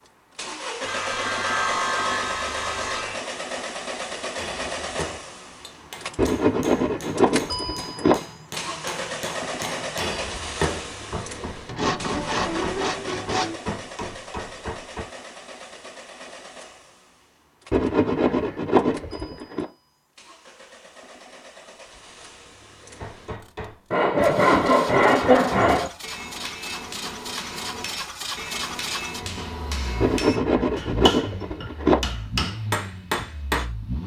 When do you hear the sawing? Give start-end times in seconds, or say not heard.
0.8-3.2, 6.2-8.2, 11.7-13.6, 17.7-19.6, 23.9-25.9, 30.0-32.0.